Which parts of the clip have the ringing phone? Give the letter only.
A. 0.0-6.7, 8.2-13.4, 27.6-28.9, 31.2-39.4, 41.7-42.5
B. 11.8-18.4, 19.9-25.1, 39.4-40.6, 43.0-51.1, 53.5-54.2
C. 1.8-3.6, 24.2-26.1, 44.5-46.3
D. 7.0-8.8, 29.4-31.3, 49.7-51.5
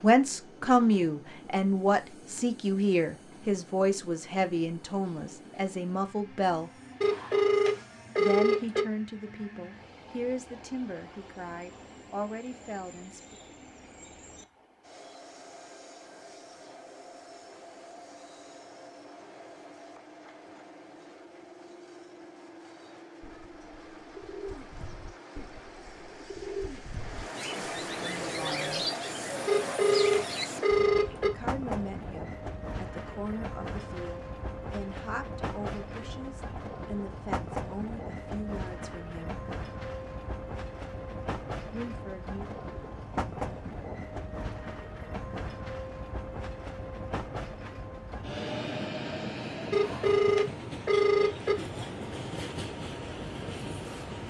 D.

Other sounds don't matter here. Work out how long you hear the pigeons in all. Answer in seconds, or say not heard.
8 s.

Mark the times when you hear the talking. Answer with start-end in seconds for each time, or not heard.
0.0-6.7, 8.2-13.4, 27.6-28.9, 31.2-39.4, 41.7-42.5.